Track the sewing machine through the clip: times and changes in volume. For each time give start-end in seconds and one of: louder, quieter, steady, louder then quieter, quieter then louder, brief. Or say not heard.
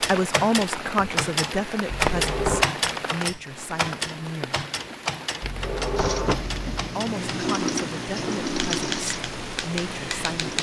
6.0-10.5 louder then quieter.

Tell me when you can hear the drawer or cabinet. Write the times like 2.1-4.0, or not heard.
1.9-2.7, 5.4-6.7.